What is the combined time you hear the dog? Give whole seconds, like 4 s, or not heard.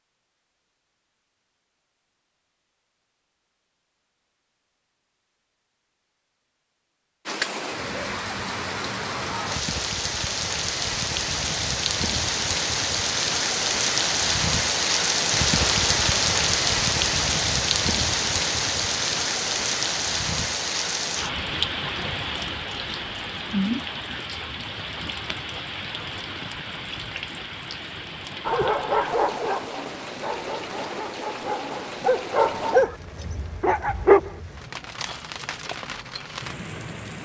6 s.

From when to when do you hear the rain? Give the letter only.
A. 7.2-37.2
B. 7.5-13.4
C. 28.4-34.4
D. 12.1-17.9
A.